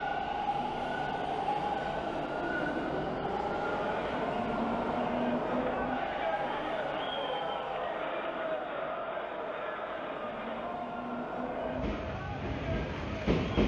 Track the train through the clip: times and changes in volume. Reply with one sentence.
You can hear the train from 0.0 to 13.6 s, getting quieter then louder.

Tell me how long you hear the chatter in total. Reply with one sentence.
The chatter can be heard for 10 seconds in total.